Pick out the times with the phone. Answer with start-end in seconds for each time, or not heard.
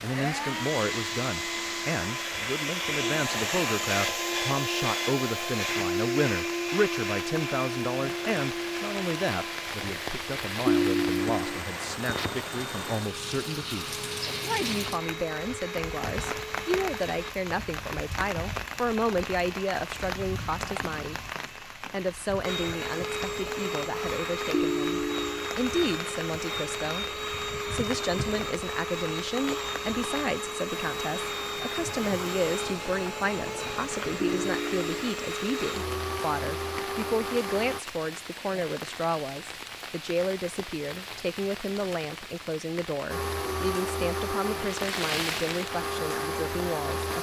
10.7-11.6, 24.5-25.5, 34.2-34.9.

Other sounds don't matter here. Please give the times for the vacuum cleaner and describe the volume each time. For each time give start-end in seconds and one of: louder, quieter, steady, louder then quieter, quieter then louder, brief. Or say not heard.
0.0-17.4 quieter
22.4-37.8 steady
43.0-47.1 quieter then louder.